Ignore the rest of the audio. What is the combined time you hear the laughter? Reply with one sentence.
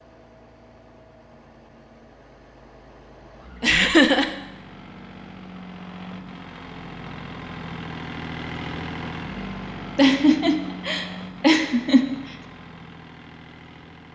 You can hear the laughter for 3 seconds altogether.